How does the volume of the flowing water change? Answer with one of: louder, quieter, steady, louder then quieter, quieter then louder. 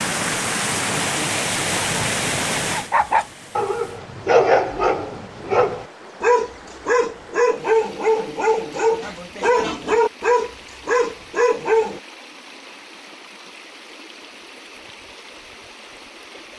quieter.